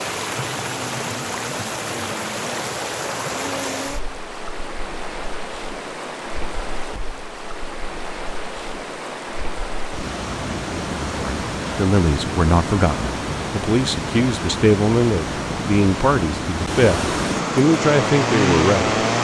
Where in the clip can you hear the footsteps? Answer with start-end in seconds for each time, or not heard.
not heard.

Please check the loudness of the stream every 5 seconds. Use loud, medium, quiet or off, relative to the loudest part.
loud, medium, loud, loud.